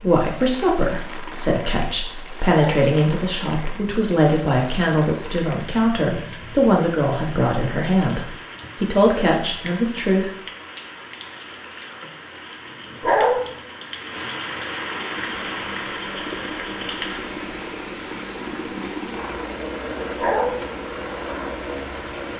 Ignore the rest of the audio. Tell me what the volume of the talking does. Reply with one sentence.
The loudness of the talking stays about the same.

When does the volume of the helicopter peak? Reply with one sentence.
The loudest moment of the helicopter is at 20 seconds.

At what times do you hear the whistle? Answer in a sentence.
You can't hear the whistle here.